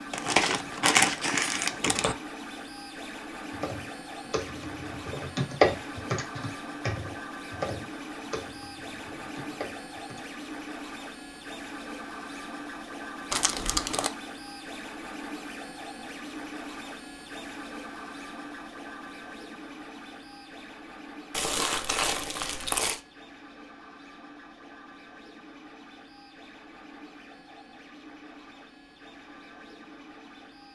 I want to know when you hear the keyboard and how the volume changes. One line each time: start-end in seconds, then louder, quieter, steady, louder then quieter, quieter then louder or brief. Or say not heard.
3.5-10.2 louder then quieter.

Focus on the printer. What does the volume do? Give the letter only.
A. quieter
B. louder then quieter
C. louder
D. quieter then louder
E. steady
A.